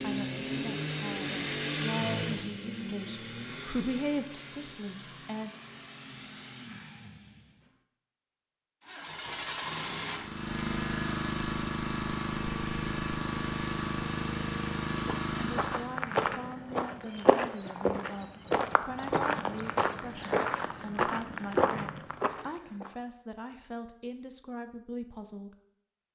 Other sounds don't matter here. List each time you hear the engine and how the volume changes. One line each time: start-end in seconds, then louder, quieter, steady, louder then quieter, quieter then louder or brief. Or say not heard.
0.0-7.8 quieter
8.8-15.9 steady.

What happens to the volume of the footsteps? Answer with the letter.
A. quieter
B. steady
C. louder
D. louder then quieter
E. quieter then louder
B.